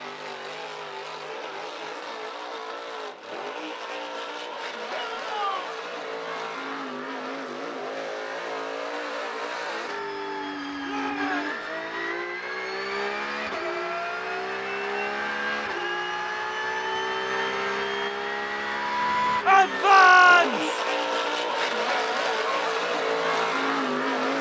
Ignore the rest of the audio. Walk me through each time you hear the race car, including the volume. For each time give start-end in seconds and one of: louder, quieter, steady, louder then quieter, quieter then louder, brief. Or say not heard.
0.0-24.3 louder.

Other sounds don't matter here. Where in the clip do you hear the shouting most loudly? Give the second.
20 s.